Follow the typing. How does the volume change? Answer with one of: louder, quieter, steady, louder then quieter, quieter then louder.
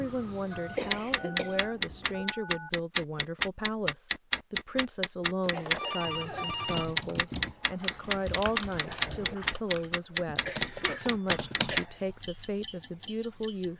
louder then quieter.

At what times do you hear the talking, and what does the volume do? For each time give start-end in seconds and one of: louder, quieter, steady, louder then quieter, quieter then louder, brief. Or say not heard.
0.0-13.7 steady.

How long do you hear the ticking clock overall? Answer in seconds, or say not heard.
14 s.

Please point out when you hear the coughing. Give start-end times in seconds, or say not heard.
0.8-2.2, 5.5-6.7, 10.4-11.8.